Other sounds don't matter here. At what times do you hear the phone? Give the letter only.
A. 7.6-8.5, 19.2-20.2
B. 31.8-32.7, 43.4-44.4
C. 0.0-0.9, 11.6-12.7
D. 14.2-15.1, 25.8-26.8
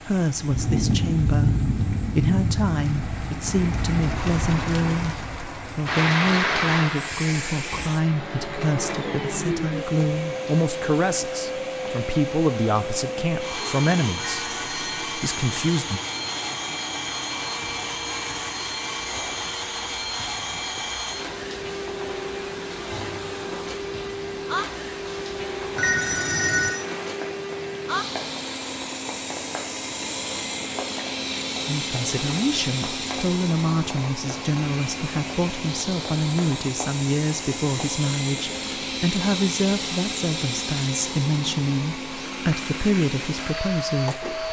D.